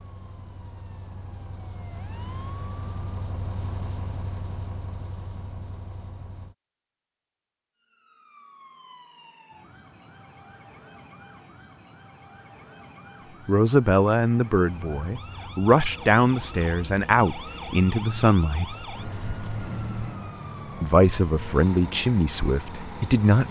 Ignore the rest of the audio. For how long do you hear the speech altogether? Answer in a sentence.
You can hear the speech for 8 seconds altogether.